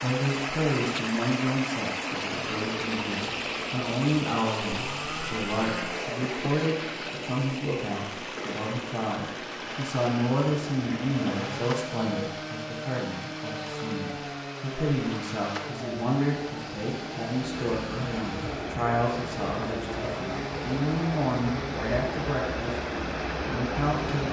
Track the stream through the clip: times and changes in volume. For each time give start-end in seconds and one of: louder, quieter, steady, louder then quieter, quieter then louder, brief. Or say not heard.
0.0-24.2 quieter then louder.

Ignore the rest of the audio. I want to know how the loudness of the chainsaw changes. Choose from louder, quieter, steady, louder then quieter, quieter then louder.
steady.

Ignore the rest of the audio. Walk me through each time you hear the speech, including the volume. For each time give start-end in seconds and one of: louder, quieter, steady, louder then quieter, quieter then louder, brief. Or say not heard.
0.0-22.8 steady
23.4-24.2 brief.